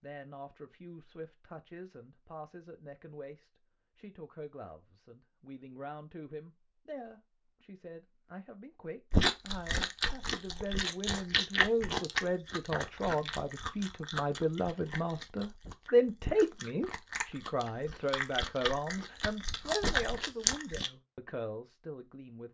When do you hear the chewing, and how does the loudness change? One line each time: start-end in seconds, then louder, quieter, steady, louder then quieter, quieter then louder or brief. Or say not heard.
9.1-20.9 quieter then louder.